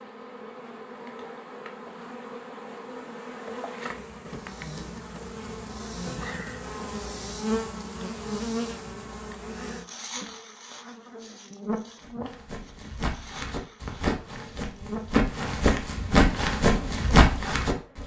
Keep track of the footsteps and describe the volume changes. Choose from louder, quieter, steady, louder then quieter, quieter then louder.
louder.